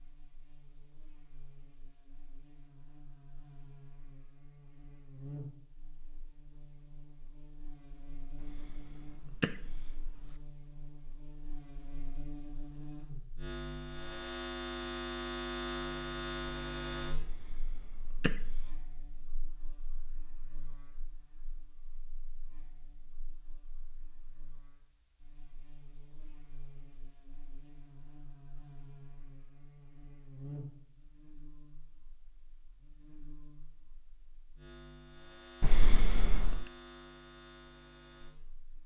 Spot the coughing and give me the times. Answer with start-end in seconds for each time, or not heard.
8.4-10.3, 17.2-18.7, 35.6-36.6.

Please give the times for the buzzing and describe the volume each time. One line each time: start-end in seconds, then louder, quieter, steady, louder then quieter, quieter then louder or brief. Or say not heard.
0.0-38.8 louder then quieter.